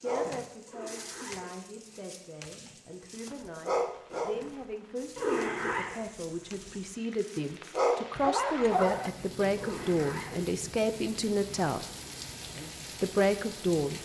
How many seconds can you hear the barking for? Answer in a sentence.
You can hear the barking for 9 seconds altogether.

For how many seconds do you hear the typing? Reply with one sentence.
You can't hear the typing here.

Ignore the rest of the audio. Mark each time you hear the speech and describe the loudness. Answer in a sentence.
The speech can be heard from 0.0 to 11.8 s, getting louder; and briefly from 13.0 to 14.0 s.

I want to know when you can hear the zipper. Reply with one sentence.
You can hear the zipper from 0.7 to 2.0 s, from 5.2 to 6.0 s and from 9.6 to 10.4 s.